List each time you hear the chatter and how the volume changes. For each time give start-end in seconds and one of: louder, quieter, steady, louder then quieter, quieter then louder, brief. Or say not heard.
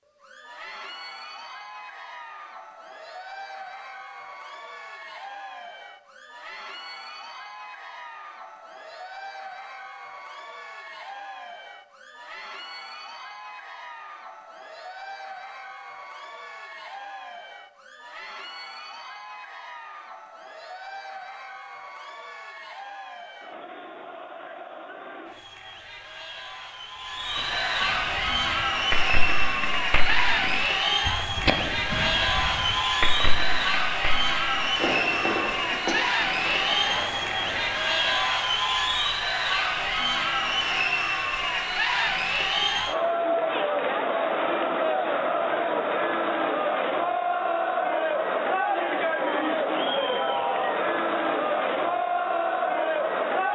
0.1-53.5 louder.